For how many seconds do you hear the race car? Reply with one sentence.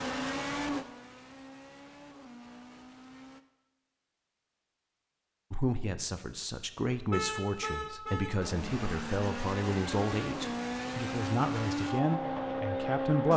You can hear the race car for 8 seconds altogether.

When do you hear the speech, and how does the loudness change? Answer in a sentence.
The speech can be heard from 5.5 to 13.3 s, at a steady volume.